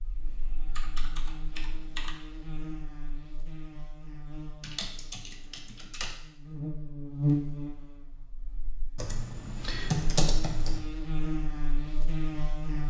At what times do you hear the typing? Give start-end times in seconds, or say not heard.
0.2-2.2, 4.6-6.2, 8.9-10.8.